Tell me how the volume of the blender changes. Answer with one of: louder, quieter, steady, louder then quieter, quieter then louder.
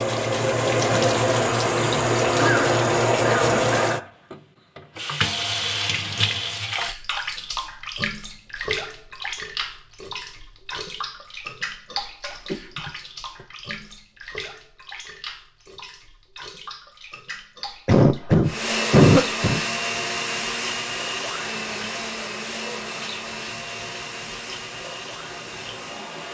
quieter.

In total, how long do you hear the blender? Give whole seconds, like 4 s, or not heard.
8 s.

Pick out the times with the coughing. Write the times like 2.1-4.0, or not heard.
2.4-4.1, 12.4-13.4, 17.9-19.6.